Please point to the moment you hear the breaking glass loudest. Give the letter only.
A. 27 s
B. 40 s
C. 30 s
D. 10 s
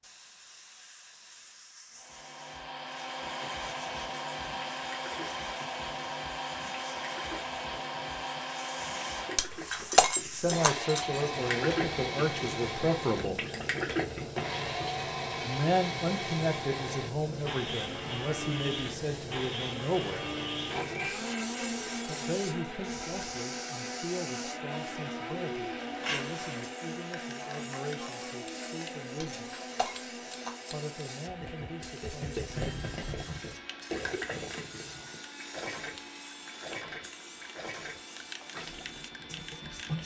D.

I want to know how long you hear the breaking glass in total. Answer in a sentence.
The breaking glass can be heard for 3 seconds in total.